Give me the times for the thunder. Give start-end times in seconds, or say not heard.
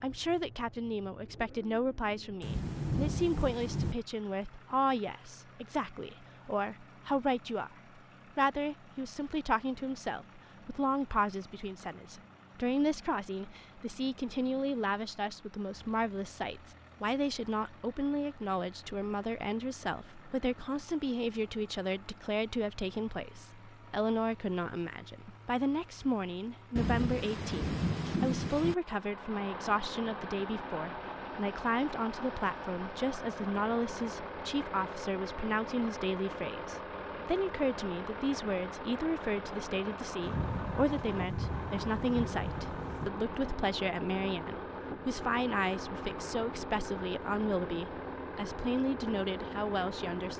2.4-4.0, 26.8-28.8, 40.2-43.1.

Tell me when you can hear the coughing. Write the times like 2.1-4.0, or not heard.
not heard.